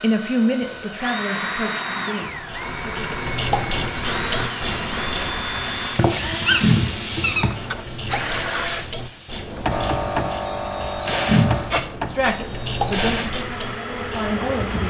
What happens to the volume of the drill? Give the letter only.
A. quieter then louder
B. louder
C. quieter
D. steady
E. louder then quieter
D.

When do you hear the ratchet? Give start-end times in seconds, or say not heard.
2.2-14.4.